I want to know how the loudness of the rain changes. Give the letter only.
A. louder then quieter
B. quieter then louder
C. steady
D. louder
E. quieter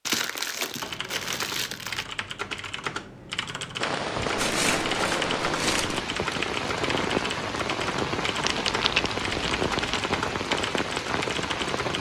C.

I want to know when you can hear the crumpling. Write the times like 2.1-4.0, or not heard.
0.1-2.0, 4.3-6.0, 8.4-10.0.